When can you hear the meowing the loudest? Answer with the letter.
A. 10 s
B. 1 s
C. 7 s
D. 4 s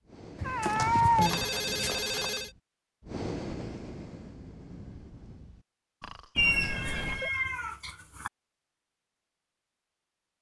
B.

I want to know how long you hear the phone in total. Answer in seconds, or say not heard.
3 s.